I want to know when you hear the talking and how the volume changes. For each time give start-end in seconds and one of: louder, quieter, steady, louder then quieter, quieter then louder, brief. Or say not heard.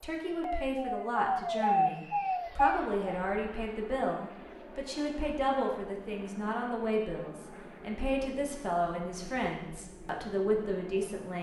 0.0-11.3 steady.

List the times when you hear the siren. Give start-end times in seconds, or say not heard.
0.0-3.2.